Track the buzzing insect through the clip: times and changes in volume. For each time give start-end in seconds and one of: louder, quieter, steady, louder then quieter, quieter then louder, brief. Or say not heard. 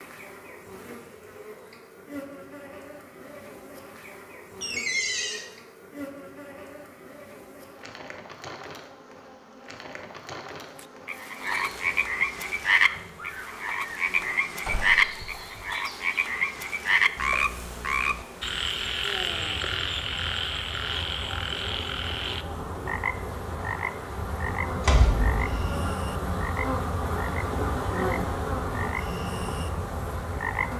0.0-30.7 louder.